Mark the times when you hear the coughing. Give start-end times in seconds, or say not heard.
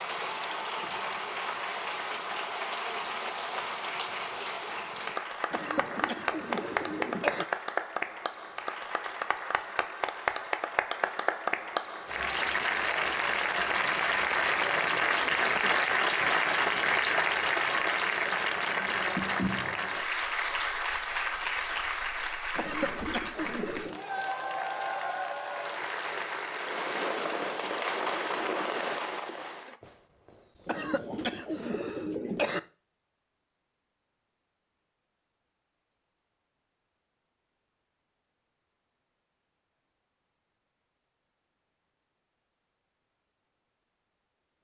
5.5-7.5, 22.6-24.0, 30.6-32.6.